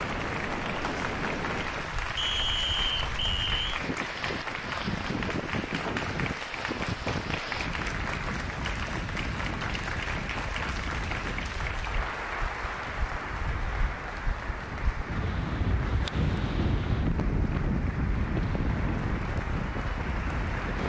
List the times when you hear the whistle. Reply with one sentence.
The whistle can be heard from 2.1 to 3.8 s.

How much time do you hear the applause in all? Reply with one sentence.
You can hear the applause for 21 seconds altogether.